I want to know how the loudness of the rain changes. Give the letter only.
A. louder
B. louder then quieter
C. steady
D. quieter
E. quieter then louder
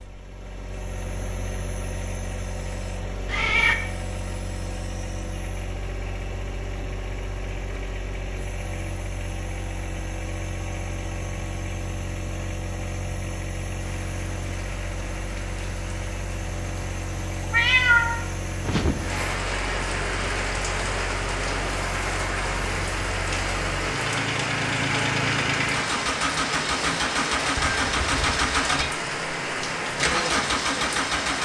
A.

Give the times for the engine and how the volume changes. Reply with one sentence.
The engine can be heard from 0.0 to 31.3 s, getting louder.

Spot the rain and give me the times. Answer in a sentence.
The rain can be heard from 13.8 to 31.3 s.